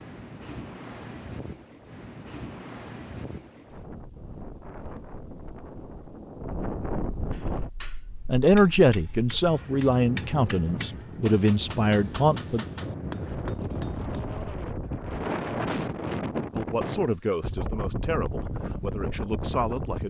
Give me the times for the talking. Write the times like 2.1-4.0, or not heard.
8.2-12.7, 16.6-20.0.